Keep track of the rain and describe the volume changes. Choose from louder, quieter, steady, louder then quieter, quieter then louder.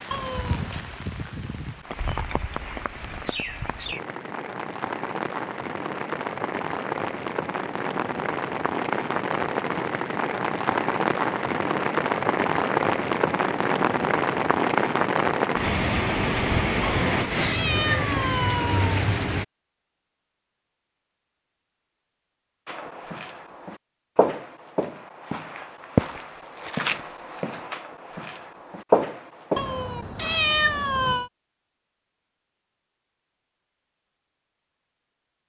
louder.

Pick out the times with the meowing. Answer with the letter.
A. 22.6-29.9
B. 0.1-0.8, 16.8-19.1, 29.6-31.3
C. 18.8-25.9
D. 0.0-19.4
B.